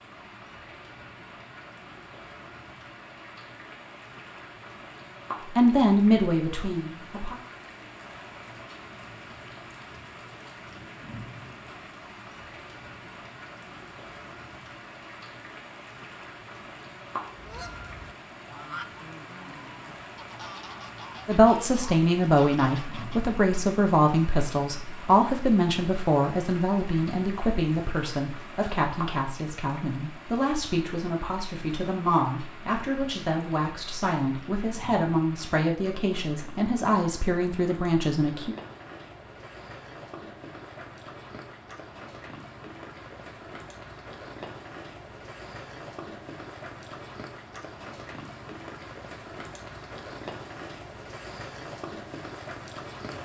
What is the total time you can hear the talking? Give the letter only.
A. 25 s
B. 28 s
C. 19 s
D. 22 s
C.